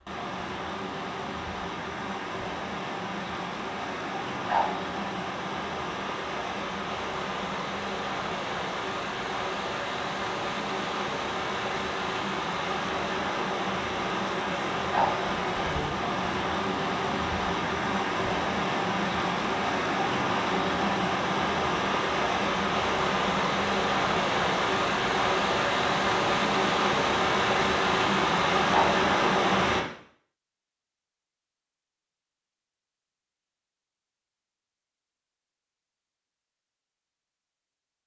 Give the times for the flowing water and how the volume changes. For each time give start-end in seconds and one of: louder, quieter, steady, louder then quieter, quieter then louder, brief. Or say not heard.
0.0-29.9 louder.